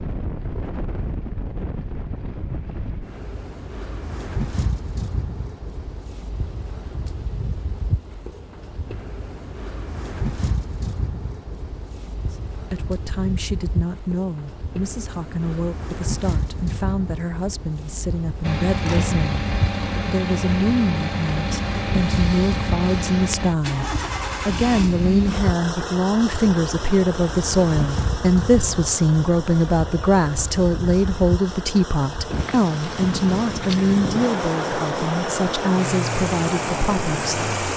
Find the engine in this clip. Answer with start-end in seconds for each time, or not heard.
18.4-37.7.